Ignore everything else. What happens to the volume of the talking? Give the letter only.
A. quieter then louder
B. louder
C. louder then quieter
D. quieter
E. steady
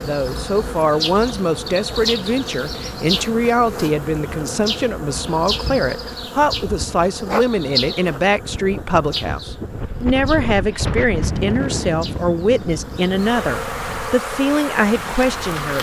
E.